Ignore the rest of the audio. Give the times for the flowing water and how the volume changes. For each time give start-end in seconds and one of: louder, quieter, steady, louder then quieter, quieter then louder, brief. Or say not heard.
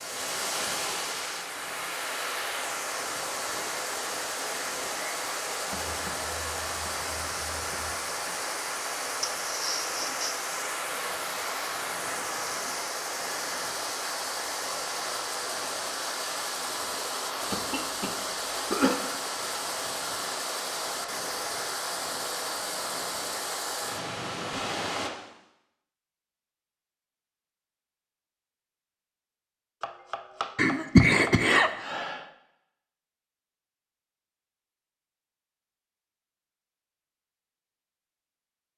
0.0-25.1 steady.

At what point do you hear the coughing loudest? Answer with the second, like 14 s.
31 s.